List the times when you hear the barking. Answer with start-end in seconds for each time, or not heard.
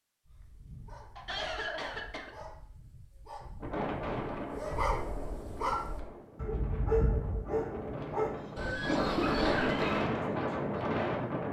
0.2-10.1.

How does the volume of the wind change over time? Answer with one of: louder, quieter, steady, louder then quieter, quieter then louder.
quieter then louder.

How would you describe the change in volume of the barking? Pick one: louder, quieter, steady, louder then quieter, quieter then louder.
louder.